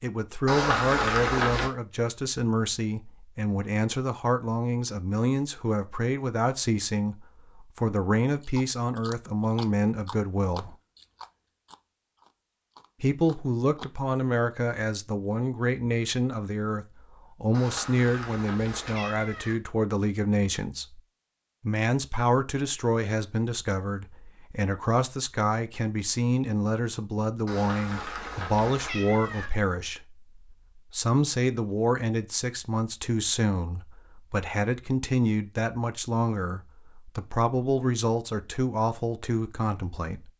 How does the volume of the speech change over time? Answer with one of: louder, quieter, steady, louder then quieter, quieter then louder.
steady.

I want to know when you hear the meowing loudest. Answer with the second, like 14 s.
1 s.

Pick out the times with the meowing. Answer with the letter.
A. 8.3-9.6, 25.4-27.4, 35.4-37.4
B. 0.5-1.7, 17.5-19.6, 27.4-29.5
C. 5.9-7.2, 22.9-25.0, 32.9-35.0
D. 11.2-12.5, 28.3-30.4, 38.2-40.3
B.